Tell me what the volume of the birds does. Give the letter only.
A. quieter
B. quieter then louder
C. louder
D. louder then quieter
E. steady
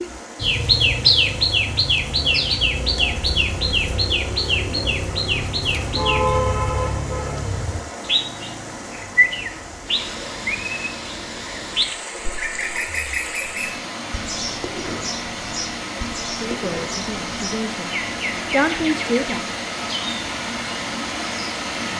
A.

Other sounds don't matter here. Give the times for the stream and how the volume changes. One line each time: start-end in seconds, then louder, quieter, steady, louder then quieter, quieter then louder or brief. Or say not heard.
0.0-21.9 louder.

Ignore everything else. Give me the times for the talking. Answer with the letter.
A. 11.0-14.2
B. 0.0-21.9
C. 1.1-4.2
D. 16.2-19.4
D.